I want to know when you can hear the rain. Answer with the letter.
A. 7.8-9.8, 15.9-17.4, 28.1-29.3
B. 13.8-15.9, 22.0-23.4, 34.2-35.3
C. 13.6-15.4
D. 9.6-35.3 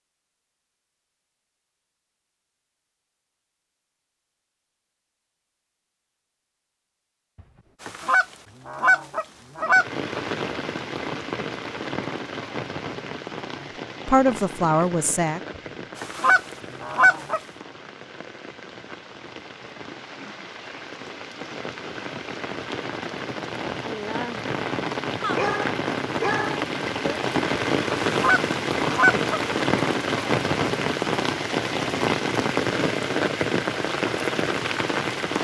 D.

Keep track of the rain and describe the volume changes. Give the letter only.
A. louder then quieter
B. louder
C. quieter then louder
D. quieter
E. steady
C.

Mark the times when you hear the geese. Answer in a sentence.
You can hear the geese from 7.8 to 9.8 s, from 15.9 to 17.4 s and from 28.1 to 29.3 s.